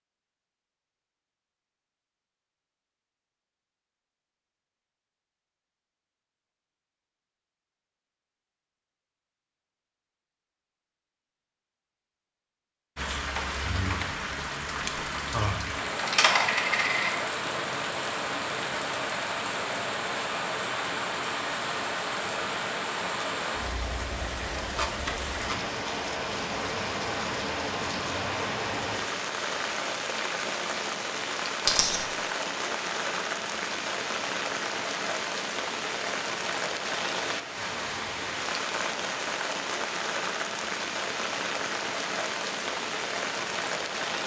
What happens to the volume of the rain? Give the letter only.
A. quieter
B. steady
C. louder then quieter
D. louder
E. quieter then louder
B.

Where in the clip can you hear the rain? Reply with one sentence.
The rain can be heard from 12.9 to 44.2 s.